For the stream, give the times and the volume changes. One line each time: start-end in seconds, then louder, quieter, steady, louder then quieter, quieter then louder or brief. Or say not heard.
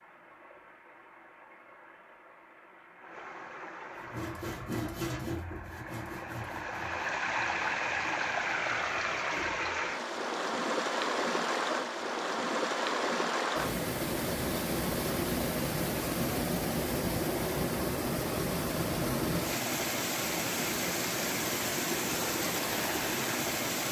0.0-23.8 louder.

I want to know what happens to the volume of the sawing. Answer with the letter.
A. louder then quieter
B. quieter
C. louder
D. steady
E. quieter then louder
B.